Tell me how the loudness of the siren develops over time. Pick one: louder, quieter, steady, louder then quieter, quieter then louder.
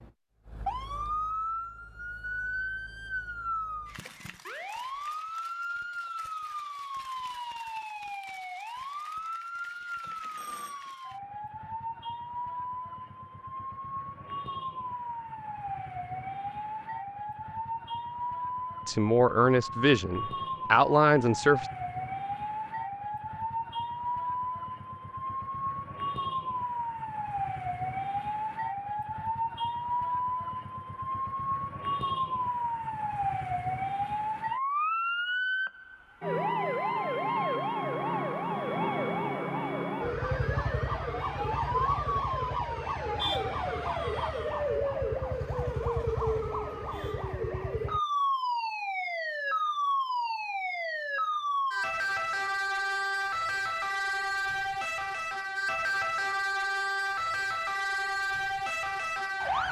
louder.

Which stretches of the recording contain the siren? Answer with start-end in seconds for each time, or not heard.
0.0-59.6.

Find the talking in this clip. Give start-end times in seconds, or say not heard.
18.9-21.6.